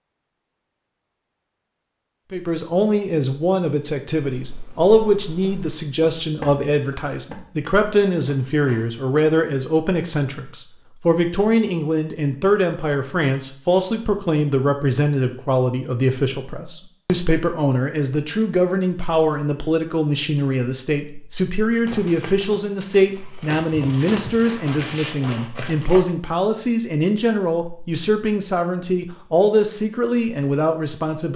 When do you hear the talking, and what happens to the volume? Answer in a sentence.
You can hear the talking from 2.3 to 31.3 s, at a steady volume.